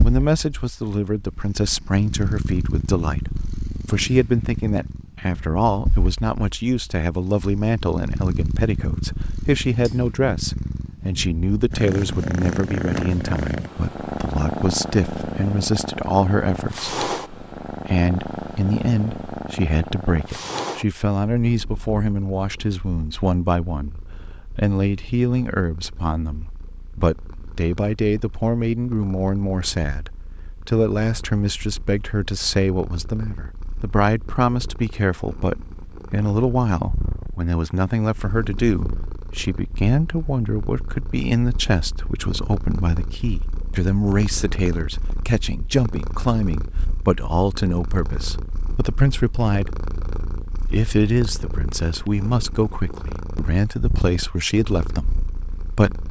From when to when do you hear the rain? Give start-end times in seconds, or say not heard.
not heard.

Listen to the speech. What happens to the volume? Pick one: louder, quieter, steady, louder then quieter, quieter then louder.
steady.